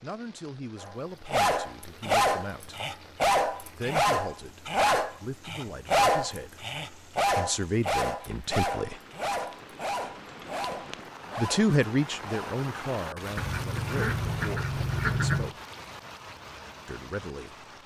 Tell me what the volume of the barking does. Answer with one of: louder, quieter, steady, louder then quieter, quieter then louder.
quieter.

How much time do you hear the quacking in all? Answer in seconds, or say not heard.
2 s.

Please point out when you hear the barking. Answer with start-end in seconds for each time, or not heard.
0.8-12.6.